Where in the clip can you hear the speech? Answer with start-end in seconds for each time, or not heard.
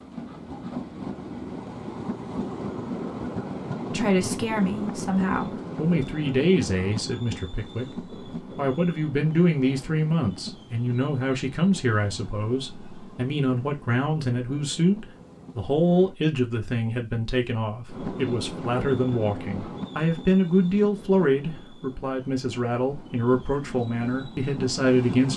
3.9-7.8, 8.6-25.3.